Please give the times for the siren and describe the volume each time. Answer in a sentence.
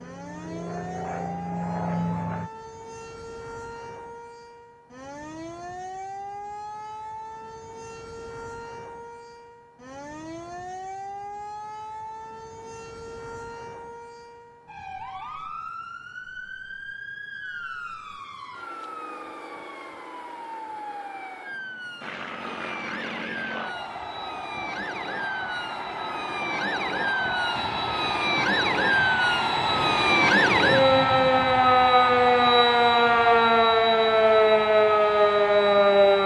The siren can be heard from 0.0 to 36.2 s, getting louder.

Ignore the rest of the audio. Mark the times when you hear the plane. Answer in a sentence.
You can hear the plane from 0.0 to 2.5 s and from 22.0 to 36.2 s.